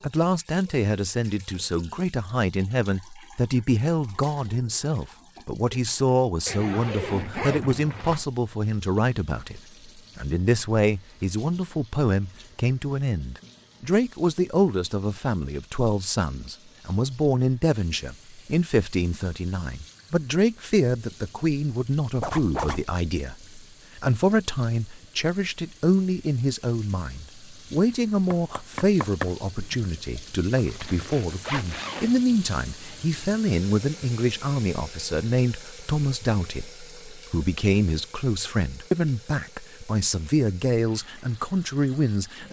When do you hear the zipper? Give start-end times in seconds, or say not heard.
6.5-8.2, 22.2-22.9, 30.6-32.2.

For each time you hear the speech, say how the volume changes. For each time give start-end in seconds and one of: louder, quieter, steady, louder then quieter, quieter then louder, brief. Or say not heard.
0.0-42.4 steady.